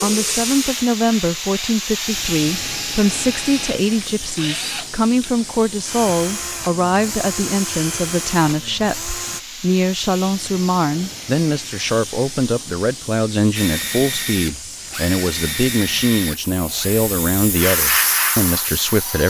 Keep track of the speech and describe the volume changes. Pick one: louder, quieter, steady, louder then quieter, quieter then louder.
steady.